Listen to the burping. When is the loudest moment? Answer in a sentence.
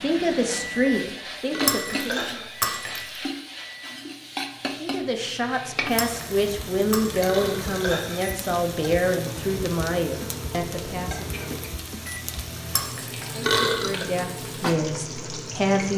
The loudest moment of the burping is at 14 seconds.